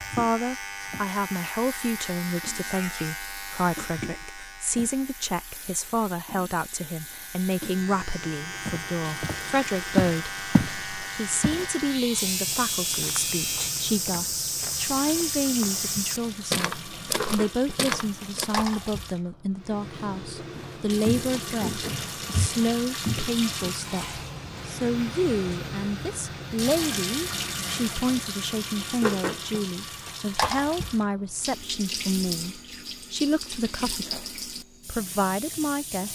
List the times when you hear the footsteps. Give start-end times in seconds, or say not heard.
8.7-18.6, 20.6-23.8.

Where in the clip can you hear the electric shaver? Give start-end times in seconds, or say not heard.
0.0-13.8.